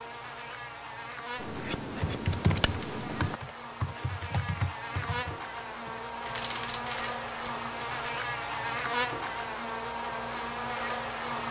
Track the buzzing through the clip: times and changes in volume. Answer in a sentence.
You can hear the buzzing from 0.0 to 11.4 s, getting louder.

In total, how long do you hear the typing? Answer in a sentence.
The typing can be heard for 5 seconds in total.